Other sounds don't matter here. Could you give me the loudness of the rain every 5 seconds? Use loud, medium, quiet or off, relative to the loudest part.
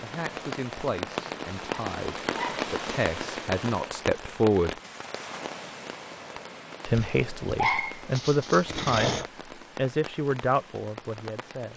loud, medium, medium.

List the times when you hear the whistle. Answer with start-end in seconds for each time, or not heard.
not heard.